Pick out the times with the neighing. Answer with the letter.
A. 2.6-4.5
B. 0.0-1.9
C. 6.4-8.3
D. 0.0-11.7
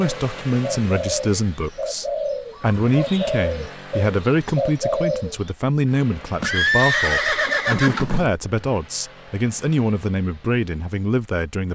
C.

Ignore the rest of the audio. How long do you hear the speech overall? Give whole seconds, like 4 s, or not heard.
12 s.